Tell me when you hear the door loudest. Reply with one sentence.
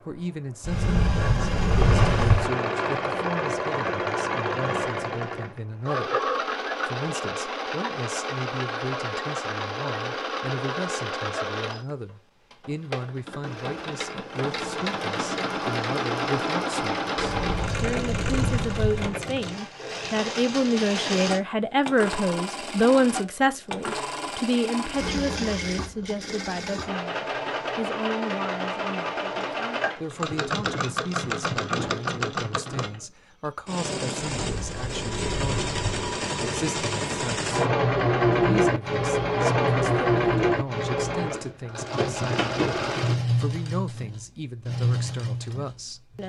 The volume of the door peaks at 2 seconds.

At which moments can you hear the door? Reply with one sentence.
The door can be heard from 0.6 to 2.5 s, from 17.1 to 19.1 s and from 34.4 to 36.1 s.